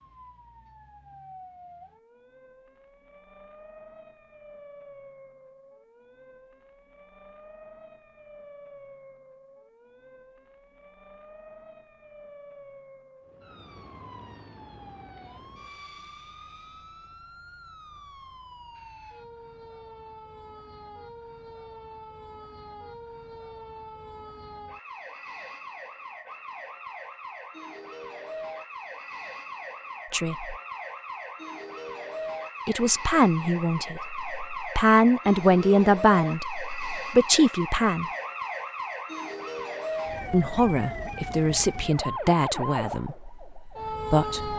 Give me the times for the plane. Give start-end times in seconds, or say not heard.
13.2-17.2.